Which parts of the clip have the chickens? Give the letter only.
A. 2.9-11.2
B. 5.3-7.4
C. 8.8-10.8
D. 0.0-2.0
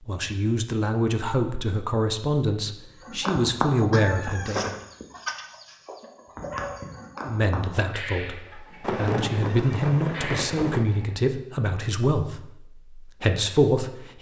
A.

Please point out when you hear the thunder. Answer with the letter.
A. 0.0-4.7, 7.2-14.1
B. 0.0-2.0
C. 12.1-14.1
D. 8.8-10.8
D.